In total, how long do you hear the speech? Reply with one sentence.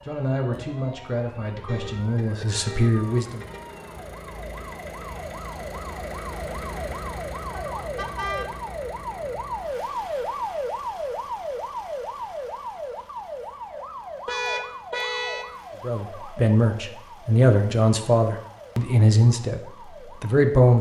The speech can be heard for 8 seconds in total.